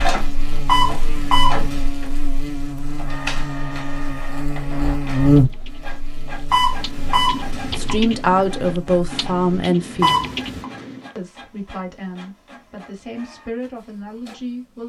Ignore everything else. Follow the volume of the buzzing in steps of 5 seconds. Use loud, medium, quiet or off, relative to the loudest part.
medium, loud, off.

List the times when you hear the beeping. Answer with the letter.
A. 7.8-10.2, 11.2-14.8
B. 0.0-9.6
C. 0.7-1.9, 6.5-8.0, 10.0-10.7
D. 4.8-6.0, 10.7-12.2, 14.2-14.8
C.